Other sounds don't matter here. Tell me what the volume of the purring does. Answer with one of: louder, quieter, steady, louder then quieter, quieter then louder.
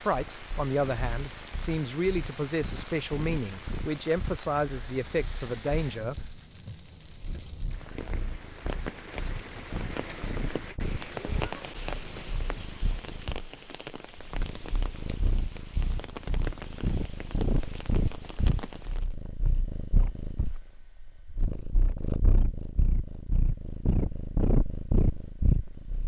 louder.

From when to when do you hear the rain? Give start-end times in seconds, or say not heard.
0.0-19.1.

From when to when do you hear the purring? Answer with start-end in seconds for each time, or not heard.
0.1-26.0.